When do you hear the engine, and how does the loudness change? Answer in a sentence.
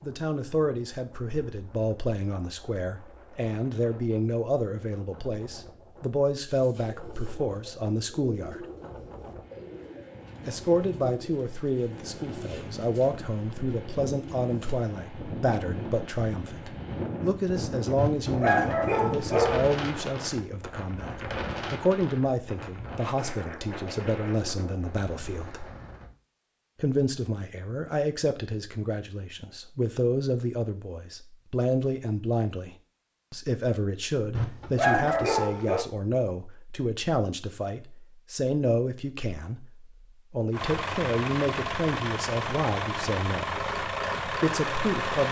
The engine can be heard from 40.5 to 45.2 s, at a steady volume.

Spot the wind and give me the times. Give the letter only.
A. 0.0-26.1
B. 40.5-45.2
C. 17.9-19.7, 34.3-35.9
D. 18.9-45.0
A.